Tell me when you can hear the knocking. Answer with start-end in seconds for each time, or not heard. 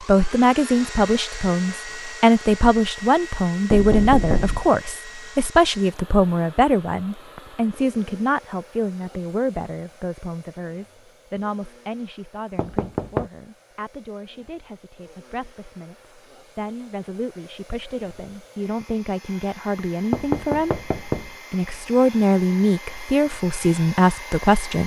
3.7-4.7, 12.6-13.3, 20.1-21.3.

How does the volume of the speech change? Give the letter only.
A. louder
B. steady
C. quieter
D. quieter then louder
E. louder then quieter
D.